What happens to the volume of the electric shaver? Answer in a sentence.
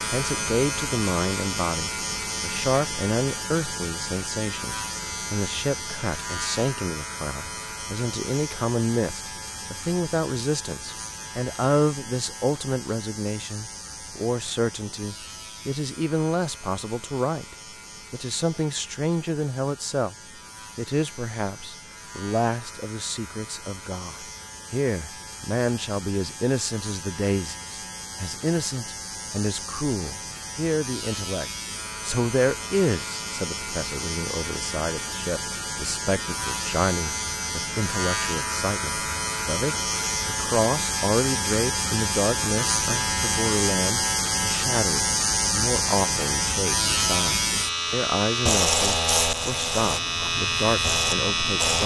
The volume of the electric shaver goes down, then up.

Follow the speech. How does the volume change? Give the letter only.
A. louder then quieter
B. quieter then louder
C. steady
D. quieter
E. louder
C.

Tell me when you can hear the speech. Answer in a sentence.
The speech can be heard from 0.1 to 20.1 s and from 20.8 to 51.8 s.